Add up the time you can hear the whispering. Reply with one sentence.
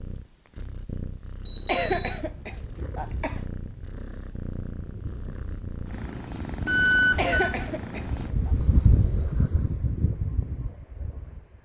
The whispering can't be heard in this clip.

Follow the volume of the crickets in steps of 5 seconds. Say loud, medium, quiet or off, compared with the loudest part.
quiet, loud, medium.